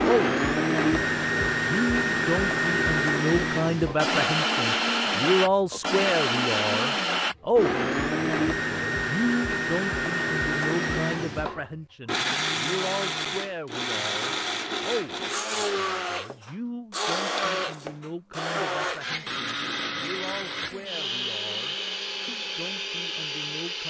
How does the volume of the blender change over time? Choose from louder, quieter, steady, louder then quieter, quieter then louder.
quieter.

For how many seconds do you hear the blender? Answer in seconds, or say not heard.
24 s.